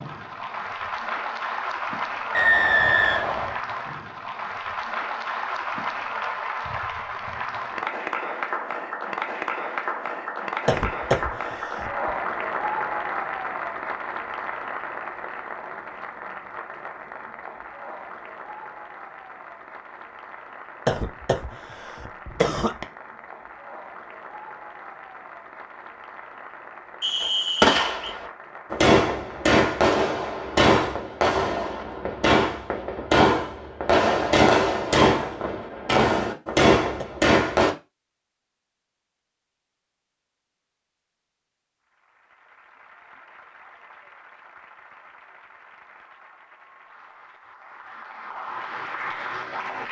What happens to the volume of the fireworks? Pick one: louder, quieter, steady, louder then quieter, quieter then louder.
steady.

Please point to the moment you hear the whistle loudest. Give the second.
3 s.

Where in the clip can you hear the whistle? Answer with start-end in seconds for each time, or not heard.
2.3-3.6, 27.0-28.1.